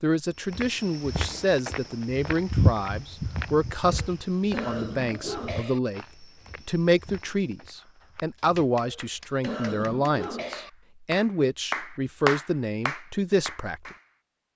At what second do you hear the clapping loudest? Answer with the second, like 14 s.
12 s.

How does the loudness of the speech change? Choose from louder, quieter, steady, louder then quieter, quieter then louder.
steady.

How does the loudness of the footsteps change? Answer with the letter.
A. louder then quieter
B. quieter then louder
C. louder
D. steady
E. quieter
A.